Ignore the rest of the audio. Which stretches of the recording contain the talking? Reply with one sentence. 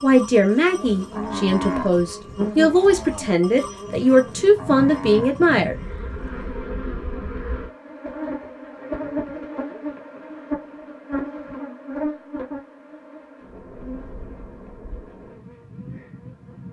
You can hear the talking from 0.0 to 5.8 s.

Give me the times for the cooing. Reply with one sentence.
The cooing can't be heard in this clip.